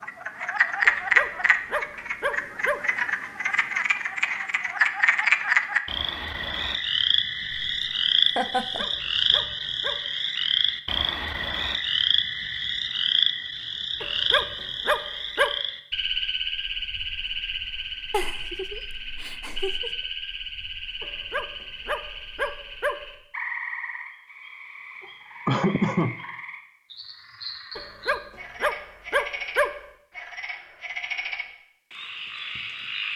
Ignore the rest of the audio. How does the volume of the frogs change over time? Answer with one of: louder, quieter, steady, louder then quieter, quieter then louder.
quieter.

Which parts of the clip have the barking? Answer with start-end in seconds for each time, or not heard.
0.8-2.9, 8.4-10.1, 14.0-15.6, 21.0-23.1, 27.8-29.9.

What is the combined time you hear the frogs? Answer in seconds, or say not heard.
33 s.